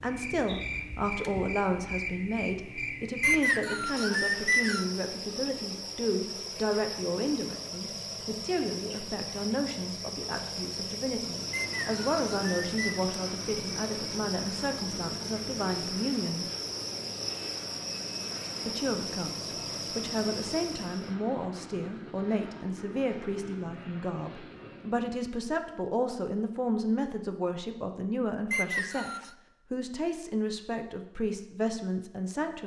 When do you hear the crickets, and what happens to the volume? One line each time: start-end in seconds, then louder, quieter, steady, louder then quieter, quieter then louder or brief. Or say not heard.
0.0-21.1 steady.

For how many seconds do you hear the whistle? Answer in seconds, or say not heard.
4 s.